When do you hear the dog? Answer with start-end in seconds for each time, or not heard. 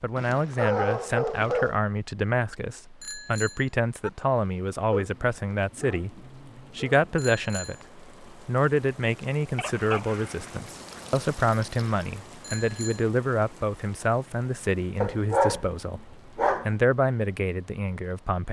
0.1-1.8, 4.9-7.1, 9.6-12.1, 15.0-16.7.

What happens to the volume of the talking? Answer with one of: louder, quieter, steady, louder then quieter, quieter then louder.
steady.